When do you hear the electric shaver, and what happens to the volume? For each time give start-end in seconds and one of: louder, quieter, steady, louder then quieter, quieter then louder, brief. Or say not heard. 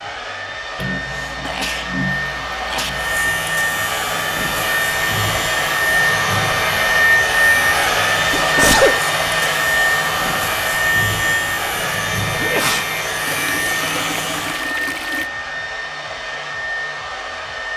2.9-14.7 steady.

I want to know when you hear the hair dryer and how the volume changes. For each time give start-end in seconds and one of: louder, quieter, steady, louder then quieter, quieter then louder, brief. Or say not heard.
0.0-17.7 louder then quieter.